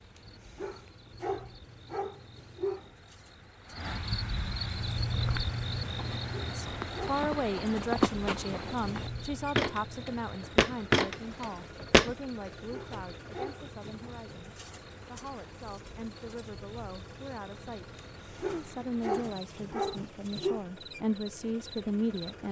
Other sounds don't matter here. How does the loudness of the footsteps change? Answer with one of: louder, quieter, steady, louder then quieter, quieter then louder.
louder.